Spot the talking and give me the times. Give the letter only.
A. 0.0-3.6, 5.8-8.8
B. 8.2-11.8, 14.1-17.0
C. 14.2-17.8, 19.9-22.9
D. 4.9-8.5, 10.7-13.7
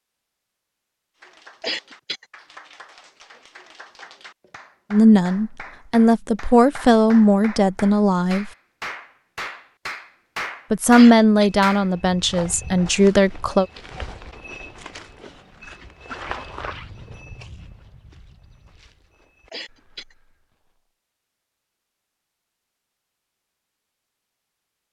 D.